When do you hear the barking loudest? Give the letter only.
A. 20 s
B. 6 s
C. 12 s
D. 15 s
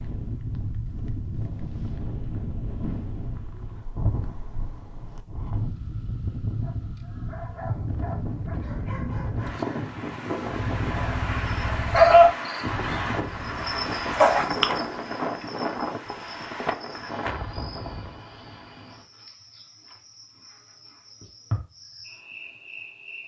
C.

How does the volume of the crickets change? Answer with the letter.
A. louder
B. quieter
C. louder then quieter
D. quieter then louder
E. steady
D.